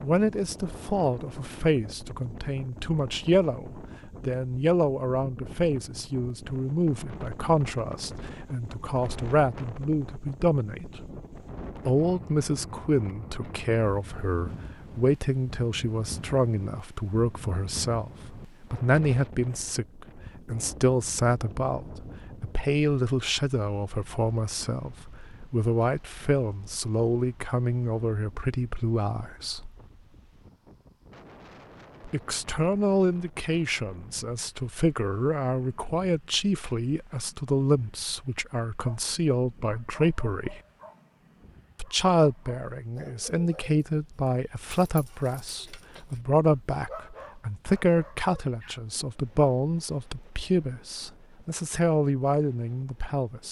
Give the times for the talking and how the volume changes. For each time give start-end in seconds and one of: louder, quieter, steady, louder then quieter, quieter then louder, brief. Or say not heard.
0.0-11.0 steady
11.8-29.7 steady
32.0-40.6 steady
41.8-53.4 steady.